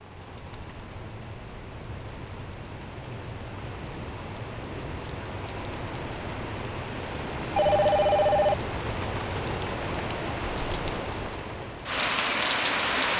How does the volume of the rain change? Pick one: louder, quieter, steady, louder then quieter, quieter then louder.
louder.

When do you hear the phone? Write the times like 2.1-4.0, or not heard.
7.5-8.8.